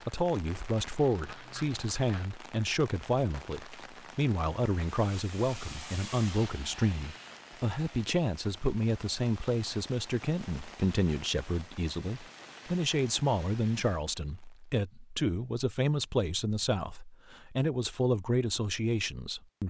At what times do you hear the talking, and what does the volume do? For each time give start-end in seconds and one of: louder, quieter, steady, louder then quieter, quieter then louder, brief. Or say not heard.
0.1-19.6 steady.